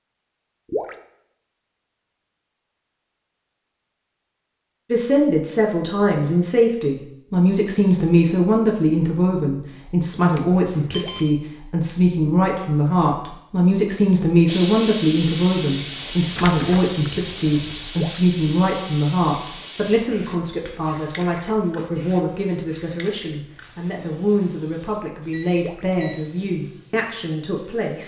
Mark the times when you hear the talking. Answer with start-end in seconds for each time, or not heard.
4.9-28.0.